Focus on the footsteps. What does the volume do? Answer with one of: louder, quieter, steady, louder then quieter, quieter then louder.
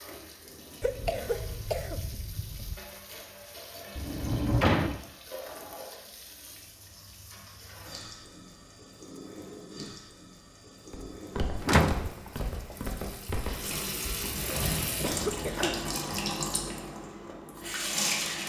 steady.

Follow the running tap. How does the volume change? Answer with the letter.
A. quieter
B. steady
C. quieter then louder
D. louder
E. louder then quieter
D.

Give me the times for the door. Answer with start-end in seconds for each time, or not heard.
4.0-5.0, 11.6-12.8.